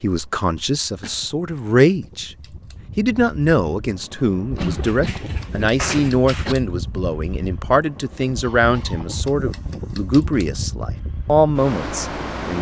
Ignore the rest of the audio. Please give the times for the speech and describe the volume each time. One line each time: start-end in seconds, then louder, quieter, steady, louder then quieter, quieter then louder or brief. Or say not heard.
0.0-2.4 brief
3.0-12.5 steady.